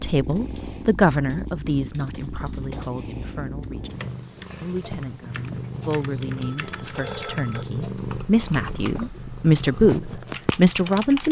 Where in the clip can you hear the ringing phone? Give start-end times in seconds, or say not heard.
6.4-7.7.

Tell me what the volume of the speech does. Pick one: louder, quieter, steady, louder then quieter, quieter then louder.
quieter then louder.